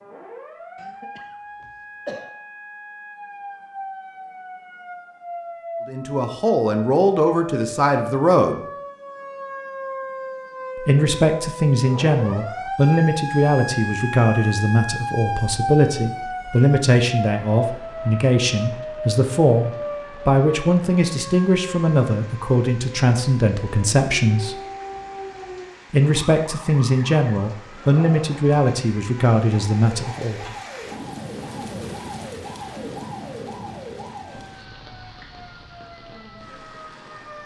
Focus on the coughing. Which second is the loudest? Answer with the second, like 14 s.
2 s.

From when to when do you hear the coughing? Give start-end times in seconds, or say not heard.
0.8-2.3.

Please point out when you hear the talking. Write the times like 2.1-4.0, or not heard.
5.8-8.6, 10.8-24.6, 25.9-30.6.